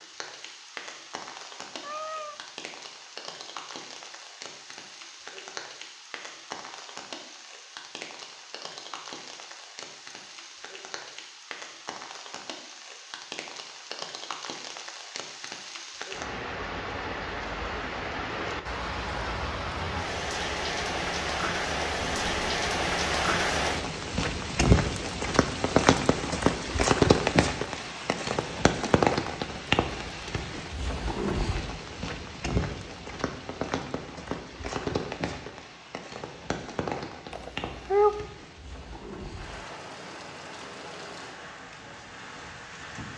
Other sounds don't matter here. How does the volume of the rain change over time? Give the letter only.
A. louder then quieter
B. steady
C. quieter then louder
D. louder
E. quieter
A.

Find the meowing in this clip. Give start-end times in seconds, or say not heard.
1.8-2.5, 21.9-22.6, 37.3-38.2.